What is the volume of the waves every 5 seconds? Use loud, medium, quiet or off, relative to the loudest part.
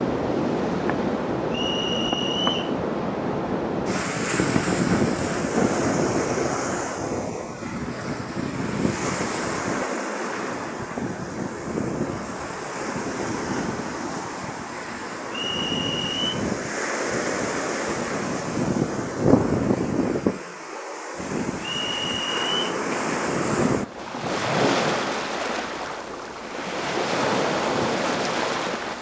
loud, loud, medium, loud, loud, loud.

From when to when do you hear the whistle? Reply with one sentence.
You can hear the whistle from 1.5 to 2.7 s, from 15.3 to 16.4 s and from 21.6 to 22.8 s.